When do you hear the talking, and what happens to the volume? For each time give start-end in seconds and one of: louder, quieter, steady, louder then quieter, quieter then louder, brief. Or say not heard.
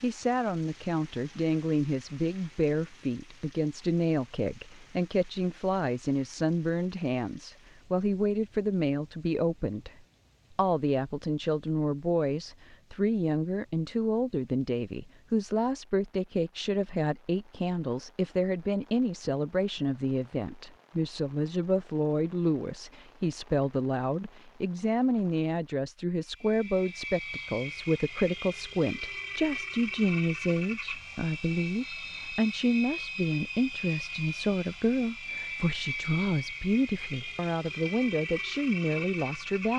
0.0-9.9 steady
10.6-39.7 steady.